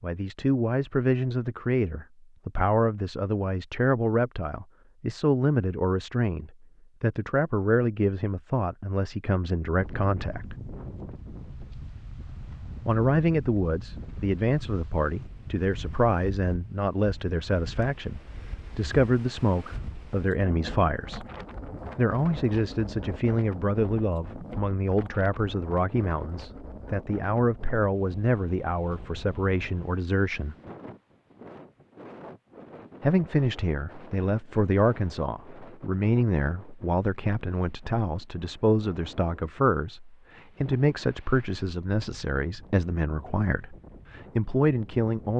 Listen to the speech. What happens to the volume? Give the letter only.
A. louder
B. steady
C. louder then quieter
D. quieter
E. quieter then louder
B.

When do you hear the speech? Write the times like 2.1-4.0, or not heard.
0.0-10.6, 12.8-21.2, 21.9-30.6, 33.0-45.3.